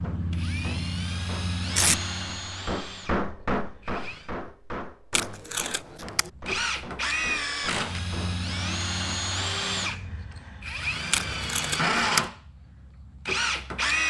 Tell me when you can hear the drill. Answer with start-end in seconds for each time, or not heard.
0.0-4.3, 6.2-14.0.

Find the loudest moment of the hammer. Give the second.
3 s.